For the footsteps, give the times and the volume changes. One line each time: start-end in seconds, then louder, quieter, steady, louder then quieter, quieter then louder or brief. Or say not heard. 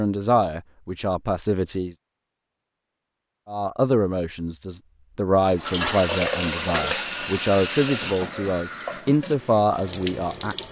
not heard.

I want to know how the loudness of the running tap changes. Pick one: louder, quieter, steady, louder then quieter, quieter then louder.
quieter.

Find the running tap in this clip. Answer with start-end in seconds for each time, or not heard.
5.5-10.6.